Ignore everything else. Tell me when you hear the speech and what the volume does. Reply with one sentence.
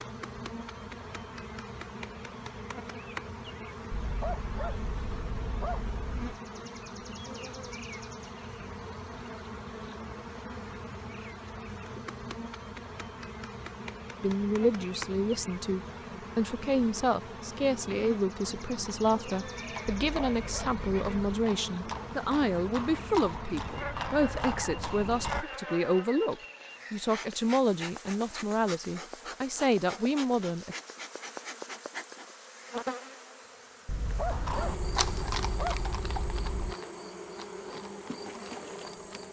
The speech can be heard from 14.2 to 30.8 s, at a steady volume.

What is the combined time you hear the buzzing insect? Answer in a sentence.
The buzzing insect can be heard for 39 seconds in total.